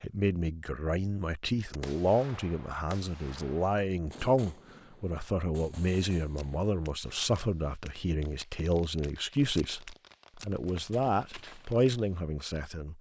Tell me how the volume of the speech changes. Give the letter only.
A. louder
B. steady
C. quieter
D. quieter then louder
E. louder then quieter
B.